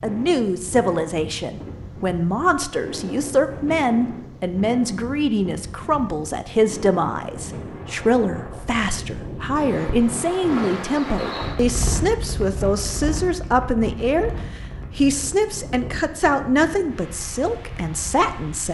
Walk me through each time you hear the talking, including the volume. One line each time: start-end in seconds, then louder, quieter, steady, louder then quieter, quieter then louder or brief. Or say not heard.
0.0-18.6 steady.